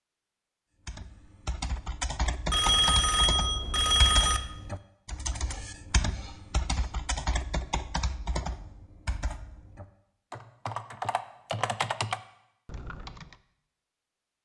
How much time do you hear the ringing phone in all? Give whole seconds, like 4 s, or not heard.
2 s.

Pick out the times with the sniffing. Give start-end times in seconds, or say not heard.
5.5-7.0.